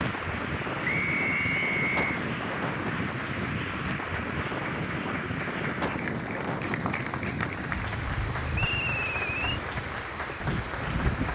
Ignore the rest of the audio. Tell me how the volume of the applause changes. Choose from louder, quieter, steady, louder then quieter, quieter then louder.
steady.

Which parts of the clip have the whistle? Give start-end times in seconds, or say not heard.
0.8-2.2, 8.5-9.6.